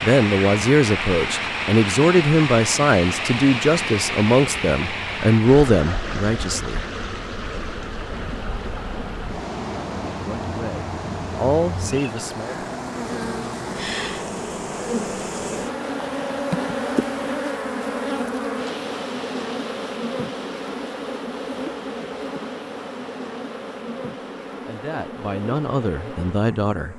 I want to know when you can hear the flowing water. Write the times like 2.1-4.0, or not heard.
0.0-17.4.